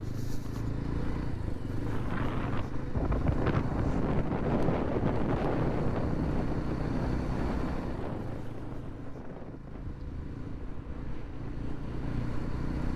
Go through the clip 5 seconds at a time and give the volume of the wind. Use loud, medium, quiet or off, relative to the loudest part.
loud, loud, quiet.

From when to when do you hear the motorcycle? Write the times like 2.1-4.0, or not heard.
0.0-12.9.